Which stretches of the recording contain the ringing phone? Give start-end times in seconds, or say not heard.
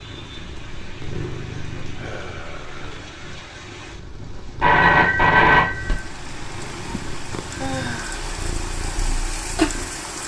4.2-6.0.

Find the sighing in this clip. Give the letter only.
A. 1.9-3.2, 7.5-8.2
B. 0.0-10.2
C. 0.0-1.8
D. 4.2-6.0
A.